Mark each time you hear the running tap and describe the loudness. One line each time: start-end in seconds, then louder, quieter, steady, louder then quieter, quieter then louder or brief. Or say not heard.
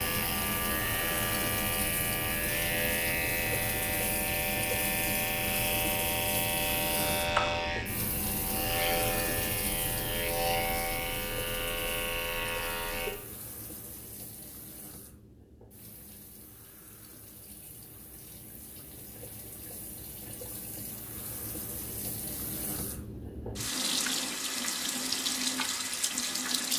0.0-26.7 quieter then louder.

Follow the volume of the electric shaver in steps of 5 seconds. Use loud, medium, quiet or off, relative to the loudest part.
loud, loud, loud, off, off, off.